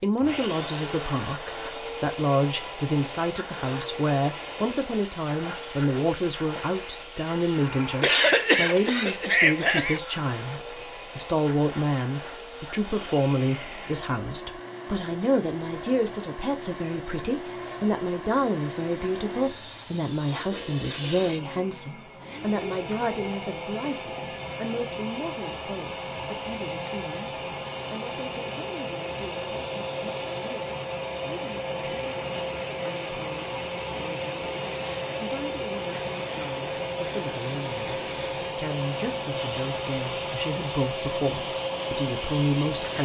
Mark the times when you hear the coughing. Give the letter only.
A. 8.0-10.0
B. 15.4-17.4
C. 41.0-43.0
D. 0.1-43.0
A.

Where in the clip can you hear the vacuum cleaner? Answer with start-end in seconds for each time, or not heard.
0.1-43.0.